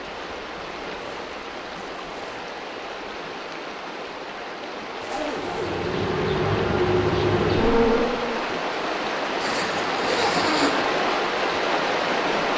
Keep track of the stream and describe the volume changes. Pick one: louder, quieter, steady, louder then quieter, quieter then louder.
louder.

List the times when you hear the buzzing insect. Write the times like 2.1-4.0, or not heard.
5.5-8.5.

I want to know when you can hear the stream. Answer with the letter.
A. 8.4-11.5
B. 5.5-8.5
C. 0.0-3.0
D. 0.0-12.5
D.